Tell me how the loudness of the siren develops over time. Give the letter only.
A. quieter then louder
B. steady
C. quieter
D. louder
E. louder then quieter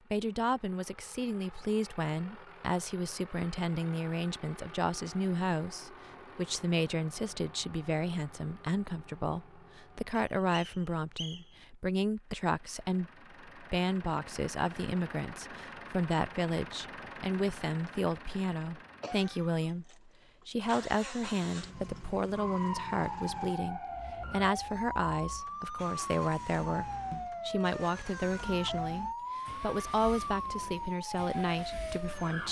B.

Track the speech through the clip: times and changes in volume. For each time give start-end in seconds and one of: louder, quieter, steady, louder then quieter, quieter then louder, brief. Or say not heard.
0.1-32.4 steady.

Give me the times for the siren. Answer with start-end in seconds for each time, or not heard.
22.3-32.4.